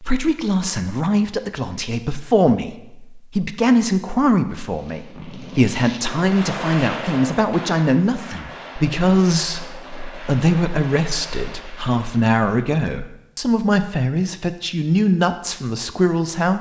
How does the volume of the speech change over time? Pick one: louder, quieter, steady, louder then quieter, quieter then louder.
steady.